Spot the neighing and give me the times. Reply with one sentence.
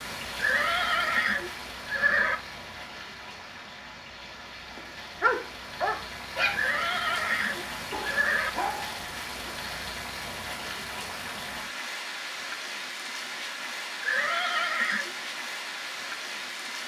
The neighing can be heard from 0.3 to 2.4 s, from 6.5 to 8.5 s and from 14.0 to 15.1 s.